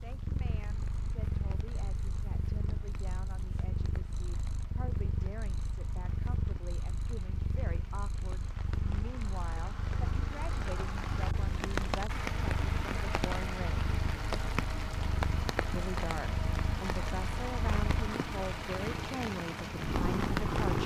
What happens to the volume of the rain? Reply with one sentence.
The loudness of the rain goes up.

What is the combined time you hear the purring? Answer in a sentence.
The purring can be heard for 21 seconds in total.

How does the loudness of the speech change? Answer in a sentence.
The loudness of the speech goes up.